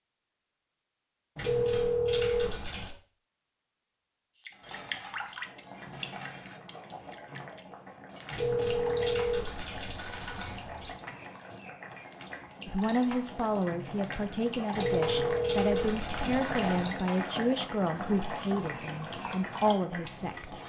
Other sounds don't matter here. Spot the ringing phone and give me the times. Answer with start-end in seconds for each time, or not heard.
1.4-2.9, 8.3-10.9, 14.7-16.9.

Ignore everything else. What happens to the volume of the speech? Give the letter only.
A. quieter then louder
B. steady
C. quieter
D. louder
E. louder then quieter
B.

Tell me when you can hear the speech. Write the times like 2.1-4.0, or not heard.
12.7-20.6.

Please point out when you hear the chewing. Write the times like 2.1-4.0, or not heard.
not heard.